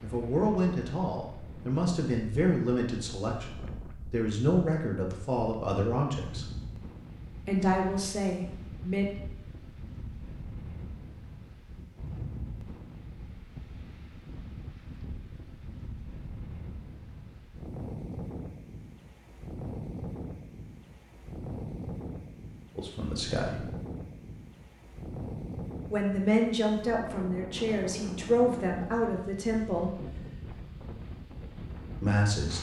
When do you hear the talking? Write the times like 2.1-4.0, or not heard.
0.0-6.5, 7.5-9.1, 22.8-23.6, 25.9-30.0, 32.0-32.5.